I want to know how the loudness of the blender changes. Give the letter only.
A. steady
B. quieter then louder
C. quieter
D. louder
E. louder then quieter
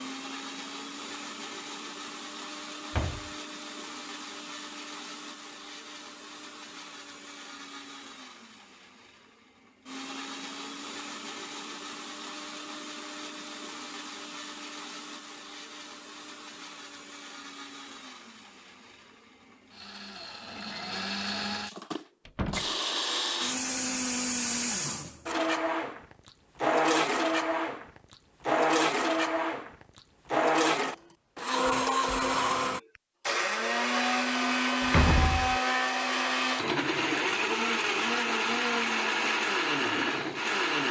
D.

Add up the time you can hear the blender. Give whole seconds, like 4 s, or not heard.
41 s.